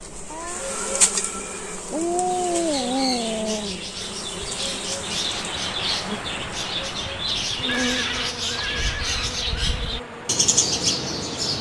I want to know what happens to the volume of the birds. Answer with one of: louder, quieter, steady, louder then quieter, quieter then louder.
louder.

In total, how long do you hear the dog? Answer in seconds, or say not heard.
2 s.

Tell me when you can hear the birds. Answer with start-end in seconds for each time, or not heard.
2.3-11.5.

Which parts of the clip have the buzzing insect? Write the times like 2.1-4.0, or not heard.
0.0-11.5.